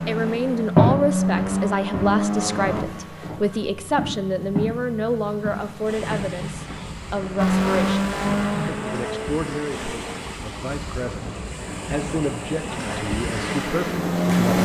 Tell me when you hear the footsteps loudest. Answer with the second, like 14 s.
1 s.